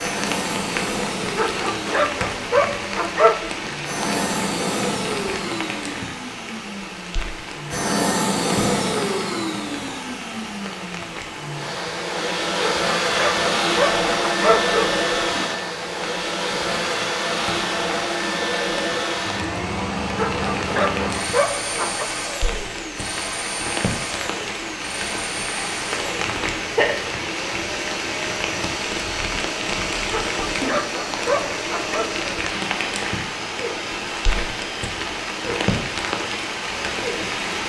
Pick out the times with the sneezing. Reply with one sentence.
The sneezing can be heard from 26.3 to 26.9 s.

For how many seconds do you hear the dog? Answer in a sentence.
You can hear the dog for 8 seconds altogether.